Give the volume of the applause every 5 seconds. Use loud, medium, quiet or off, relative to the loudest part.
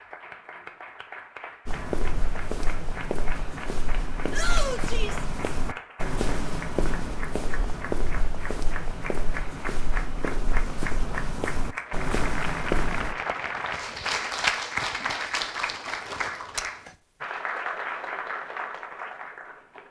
medium, medium, loud, loud.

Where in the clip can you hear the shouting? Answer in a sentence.
You can hear the shouting from 4.3 to 5.2 s.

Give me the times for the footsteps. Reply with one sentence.
You can hear the footsteps from 1.6 to 13.2 s.